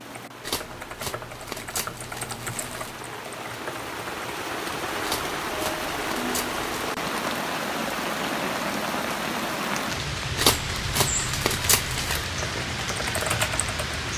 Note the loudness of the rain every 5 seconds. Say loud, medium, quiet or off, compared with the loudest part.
medium, loud, loud.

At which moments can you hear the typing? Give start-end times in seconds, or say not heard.
0.0-4.3, 12.3-13.9.